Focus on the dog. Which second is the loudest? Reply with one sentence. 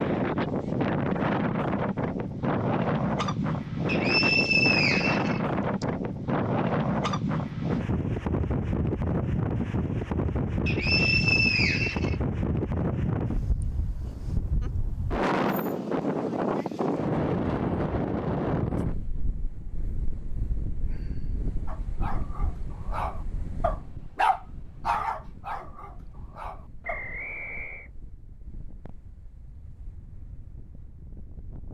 The loudest moment of the dog is at 24 seconds.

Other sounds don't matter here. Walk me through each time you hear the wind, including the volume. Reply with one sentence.
The wind can be heard from 0.0 to 31.7 s, getting quieter.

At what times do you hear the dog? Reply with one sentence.
You can hear the dog from 21.6 to 27.1 s.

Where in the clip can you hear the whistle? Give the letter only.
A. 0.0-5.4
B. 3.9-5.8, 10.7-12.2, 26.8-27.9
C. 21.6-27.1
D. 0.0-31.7
B.